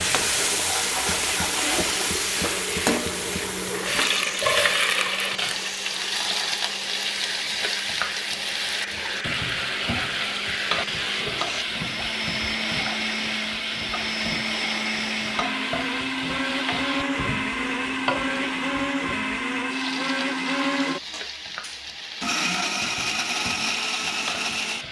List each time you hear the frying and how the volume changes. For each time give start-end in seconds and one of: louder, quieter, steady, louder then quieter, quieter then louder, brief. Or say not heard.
0.0-24.8 quieter.